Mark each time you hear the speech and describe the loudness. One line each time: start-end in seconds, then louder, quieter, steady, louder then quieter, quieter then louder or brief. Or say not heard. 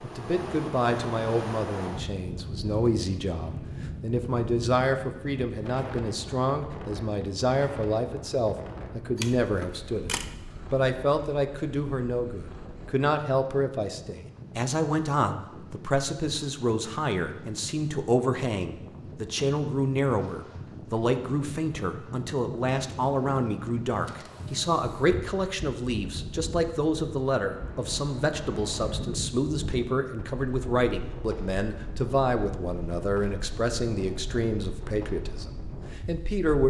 0.0-10.1 steady
10.7-36.6 steady.